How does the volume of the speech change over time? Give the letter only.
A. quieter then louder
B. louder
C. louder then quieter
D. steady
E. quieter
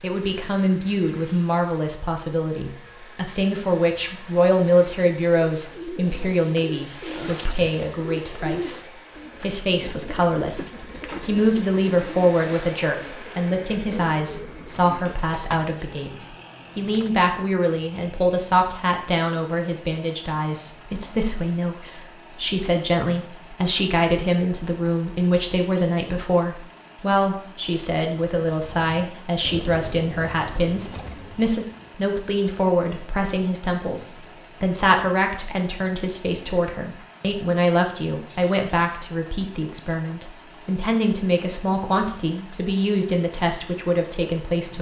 D.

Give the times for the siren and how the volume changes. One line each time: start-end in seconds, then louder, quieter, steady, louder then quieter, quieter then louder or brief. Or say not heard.
not heard.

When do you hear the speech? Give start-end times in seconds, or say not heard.
0.0-44.7.